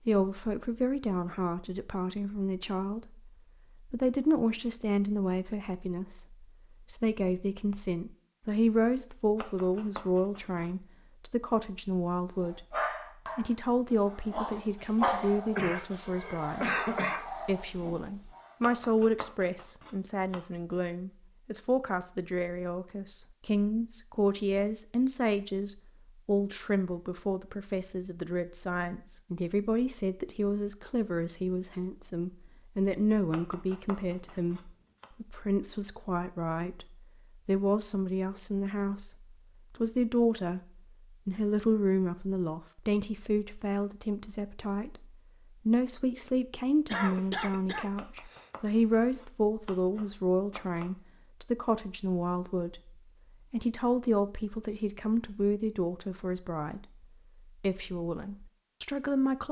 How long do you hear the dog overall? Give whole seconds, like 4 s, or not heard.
6 s.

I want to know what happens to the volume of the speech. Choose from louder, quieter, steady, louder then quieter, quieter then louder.
steady.